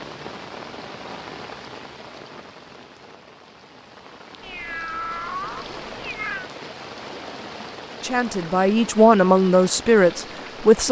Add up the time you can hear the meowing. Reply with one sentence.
You can hear the meowing for 2 seconds altogether.